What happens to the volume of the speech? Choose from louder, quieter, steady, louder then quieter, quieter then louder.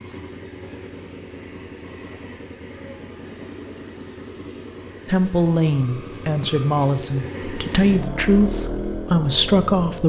steady.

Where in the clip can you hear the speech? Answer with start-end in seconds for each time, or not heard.
5.0-10.0.